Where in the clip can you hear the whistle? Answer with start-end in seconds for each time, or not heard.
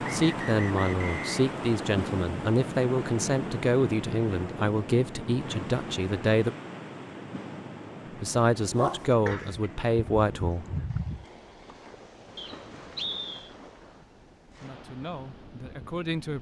0.0-1.9, 12.3-13.6.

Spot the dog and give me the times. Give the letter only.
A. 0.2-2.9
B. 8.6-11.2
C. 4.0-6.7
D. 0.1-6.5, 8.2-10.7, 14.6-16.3
B.